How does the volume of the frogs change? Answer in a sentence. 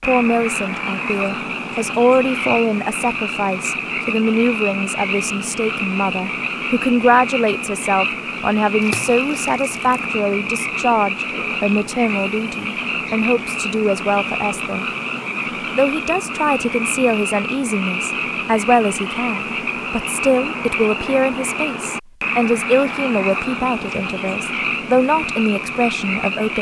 The volume of the frogs stays about the same.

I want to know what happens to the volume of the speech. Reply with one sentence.
The volume of the speech stays about the same.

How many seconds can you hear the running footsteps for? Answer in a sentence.
You can't hear the running footsteps here.